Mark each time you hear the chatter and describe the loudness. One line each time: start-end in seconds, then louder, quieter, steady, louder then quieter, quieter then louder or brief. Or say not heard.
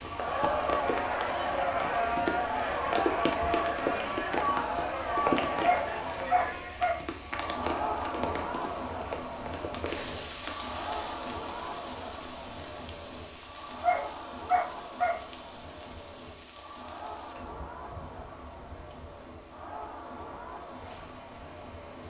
0.0-22.0 quieter.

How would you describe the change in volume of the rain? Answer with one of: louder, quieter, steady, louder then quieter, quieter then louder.
quieter.